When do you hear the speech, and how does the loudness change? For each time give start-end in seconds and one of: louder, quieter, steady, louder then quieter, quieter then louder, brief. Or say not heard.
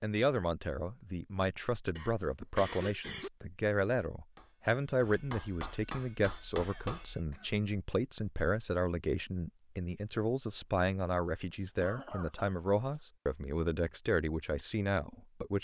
0.0-15.5 steady.